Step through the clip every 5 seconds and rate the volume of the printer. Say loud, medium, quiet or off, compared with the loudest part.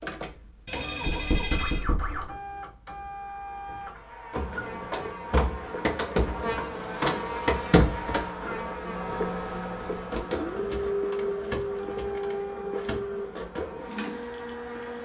medium, loud, loud.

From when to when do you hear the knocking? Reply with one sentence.
You can hear the knocking from 1.1 to 2.2 s.